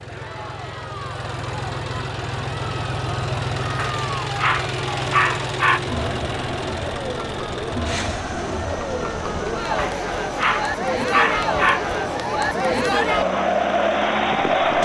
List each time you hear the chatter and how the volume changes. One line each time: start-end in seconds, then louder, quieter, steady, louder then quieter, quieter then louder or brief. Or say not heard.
0.1-14.7 louder.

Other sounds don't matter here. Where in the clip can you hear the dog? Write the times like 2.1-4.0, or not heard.
3.8-5.8, 9.8-11.8.